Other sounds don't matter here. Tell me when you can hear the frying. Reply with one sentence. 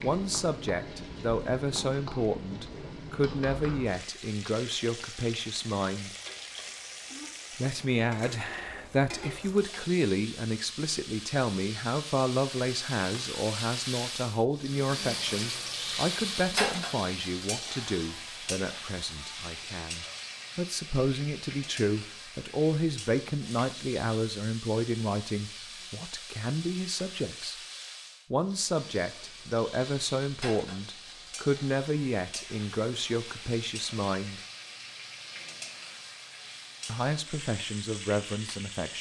You can hear the frying from 0.0 to 38.9 s.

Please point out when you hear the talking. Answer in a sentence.
The talking can be heard from 0.0 to 6.2 s, from 7.5 to 27.6 s, from 28.3 to 34.4 s and from 36.9 to 38.9 s.